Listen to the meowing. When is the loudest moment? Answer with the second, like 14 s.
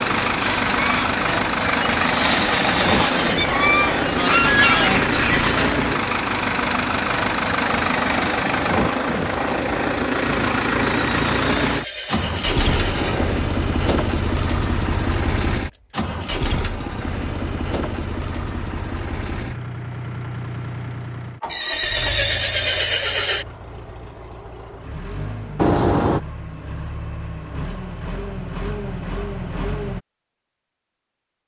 26 s.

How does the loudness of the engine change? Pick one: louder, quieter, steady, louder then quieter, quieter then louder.
quieter.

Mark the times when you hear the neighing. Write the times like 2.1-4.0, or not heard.
2.2-3.5, 10.9-13.4, 21.4-23.4.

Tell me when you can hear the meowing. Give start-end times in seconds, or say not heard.
3.1-3.9, 12.5-13.3, 25.6-26.2.